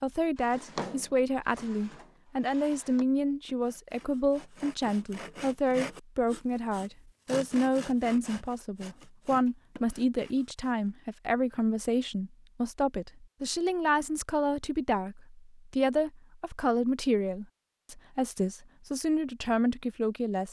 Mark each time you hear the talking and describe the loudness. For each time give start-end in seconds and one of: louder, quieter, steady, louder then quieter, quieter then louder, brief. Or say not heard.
0.0-20.4 steady.